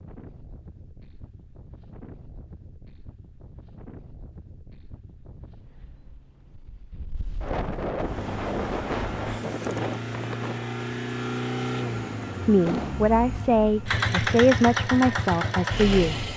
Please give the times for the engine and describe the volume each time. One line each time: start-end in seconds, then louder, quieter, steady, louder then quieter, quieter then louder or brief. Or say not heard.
7.9-16.3 louder.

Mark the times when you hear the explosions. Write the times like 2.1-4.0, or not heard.
12.7-13.1.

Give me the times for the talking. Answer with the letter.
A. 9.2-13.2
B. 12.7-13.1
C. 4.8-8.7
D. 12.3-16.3
D.